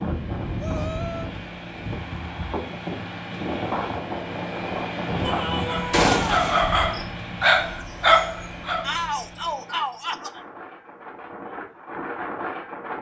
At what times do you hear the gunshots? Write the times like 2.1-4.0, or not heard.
5.9-7.0.